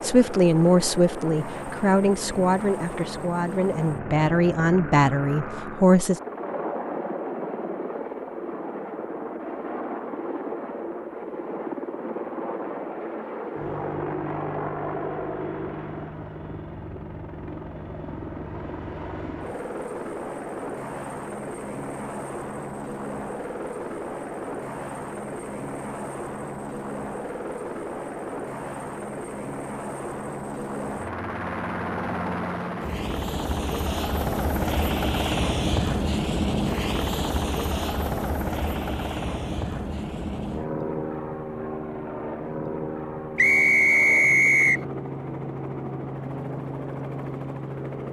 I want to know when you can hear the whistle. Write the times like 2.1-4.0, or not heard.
43.4-44.9.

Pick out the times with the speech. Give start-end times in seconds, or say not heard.
0.0-6.2.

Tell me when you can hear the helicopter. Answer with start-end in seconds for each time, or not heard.
0.0-48.0.